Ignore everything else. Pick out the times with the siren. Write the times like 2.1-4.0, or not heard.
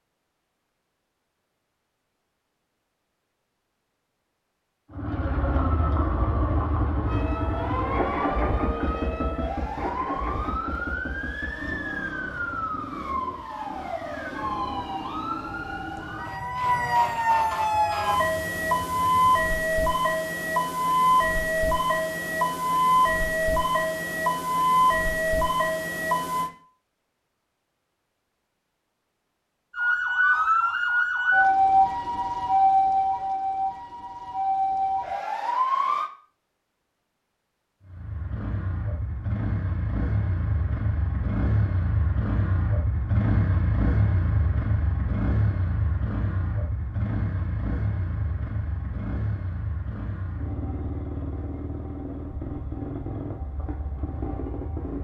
7.0-26.5, 29.7-36.1.